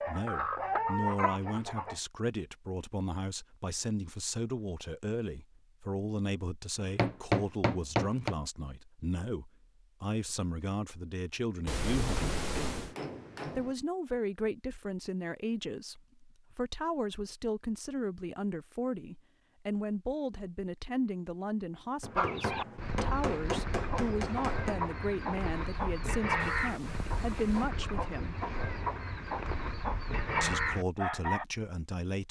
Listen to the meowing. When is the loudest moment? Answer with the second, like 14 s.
12 s.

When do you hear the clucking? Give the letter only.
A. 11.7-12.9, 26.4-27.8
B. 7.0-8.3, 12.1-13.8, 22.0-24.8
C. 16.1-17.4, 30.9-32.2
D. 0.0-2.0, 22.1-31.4
D.